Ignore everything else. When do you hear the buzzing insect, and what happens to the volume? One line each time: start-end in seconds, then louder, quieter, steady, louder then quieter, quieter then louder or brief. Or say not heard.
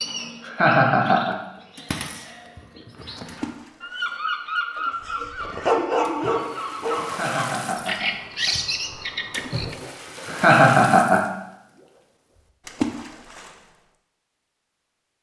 not heard.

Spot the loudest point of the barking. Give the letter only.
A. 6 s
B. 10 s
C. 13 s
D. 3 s
A.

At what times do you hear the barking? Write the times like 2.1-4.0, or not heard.
5.0-7.2.